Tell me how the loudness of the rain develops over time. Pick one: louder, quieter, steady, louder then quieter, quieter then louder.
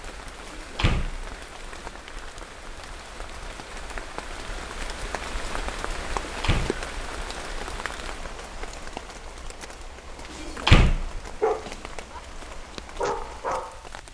louder then quieter.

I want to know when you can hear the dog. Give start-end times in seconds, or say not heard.
11.4-12.2, 12.9-13.8.